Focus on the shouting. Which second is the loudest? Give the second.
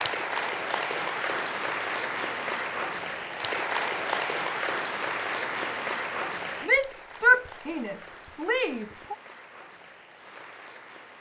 7 s.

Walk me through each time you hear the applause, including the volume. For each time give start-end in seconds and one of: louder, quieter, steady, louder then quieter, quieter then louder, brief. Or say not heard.
0.0-11.1 quieter.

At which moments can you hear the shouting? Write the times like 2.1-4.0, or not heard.
6.7-9.2.